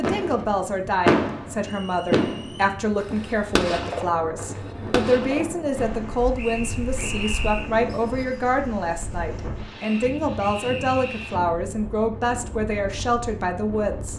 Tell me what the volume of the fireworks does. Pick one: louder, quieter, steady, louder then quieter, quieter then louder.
quieter.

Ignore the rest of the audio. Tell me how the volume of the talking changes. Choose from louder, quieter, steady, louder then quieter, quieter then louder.
steady.